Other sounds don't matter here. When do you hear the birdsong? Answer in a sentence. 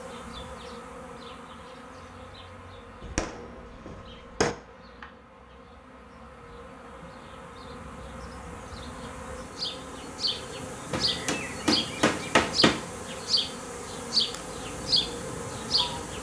The birdsong can't be heard in this clip.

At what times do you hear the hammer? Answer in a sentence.
The hammer can be heard from 3.0 to 4.5 s and from 10.9 to 12.8 s.